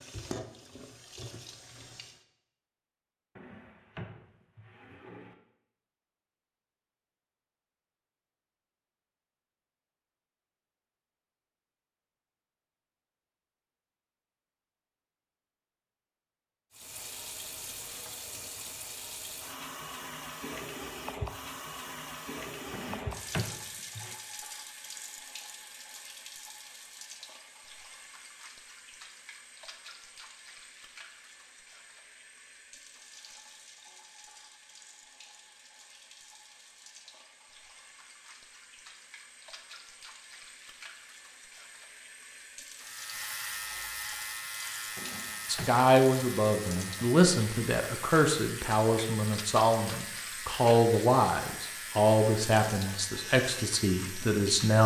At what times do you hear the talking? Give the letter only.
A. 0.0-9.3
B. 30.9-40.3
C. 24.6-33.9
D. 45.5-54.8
D.